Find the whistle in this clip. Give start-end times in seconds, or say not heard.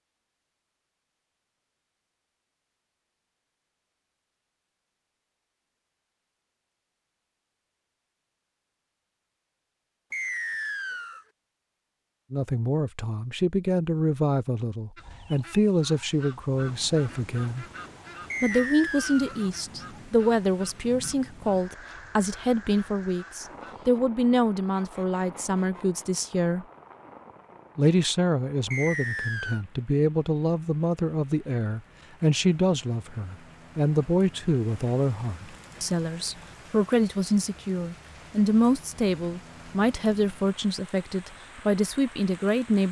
10.1-11.2, 18.3-19.4, 28.7-29.6.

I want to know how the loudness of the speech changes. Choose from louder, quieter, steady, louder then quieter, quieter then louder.
steady.